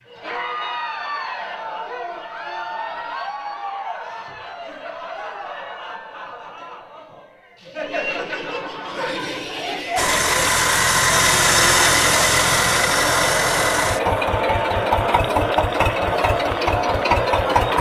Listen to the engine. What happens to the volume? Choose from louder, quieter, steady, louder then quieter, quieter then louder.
quieter.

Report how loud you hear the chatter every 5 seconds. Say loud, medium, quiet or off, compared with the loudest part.
medium, medium, loud, loud.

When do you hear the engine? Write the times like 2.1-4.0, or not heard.
9.9-17.7.